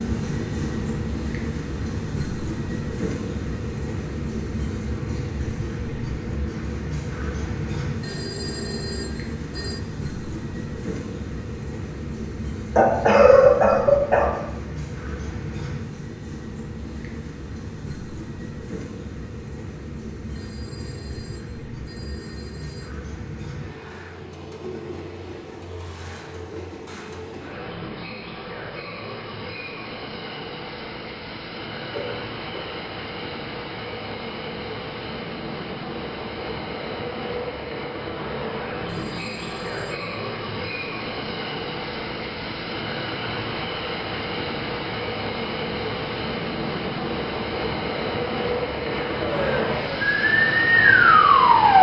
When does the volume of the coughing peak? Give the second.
13 s.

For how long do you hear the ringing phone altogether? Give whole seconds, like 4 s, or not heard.
6 s.